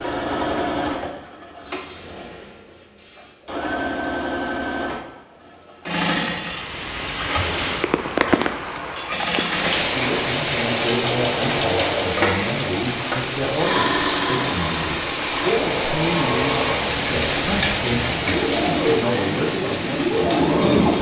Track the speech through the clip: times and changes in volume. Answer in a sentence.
You can hear the speech from 9.9 to 20.9 s, at a steady volume.